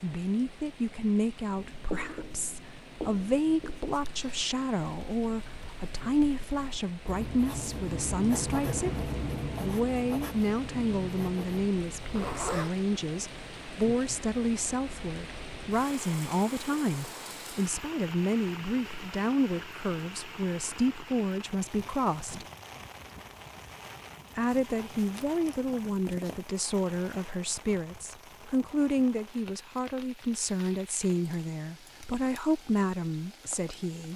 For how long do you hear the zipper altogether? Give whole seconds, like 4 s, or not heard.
3 s.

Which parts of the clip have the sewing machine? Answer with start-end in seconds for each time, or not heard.
not heard.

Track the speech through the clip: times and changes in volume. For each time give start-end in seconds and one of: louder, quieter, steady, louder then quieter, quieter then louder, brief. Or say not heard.
0.0-22.4 steady
24.4-34.1 steady.